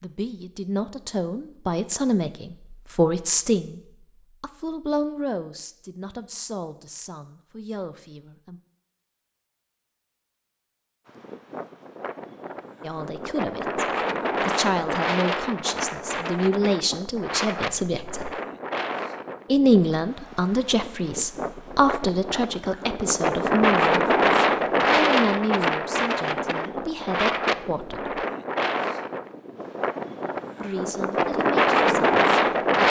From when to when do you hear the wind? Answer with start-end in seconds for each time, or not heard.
11.1-32.8.